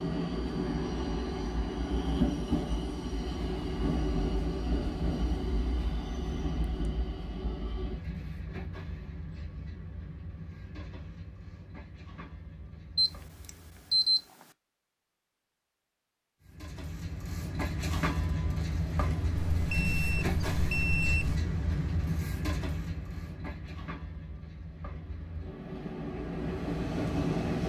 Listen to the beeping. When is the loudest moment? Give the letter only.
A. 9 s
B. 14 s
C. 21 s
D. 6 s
B.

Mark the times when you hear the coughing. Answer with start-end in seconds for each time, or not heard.
not heard.